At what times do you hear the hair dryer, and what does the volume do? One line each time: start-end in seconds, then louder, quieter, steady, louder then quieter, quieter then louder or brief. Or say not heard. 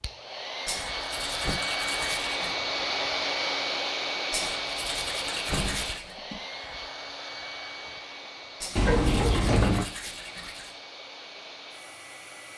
0.0-12.5 quieter.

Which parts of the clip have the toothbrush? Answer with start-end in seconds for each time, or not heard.
0.7-2.5, 4.3-6.2, 8.6-10.8.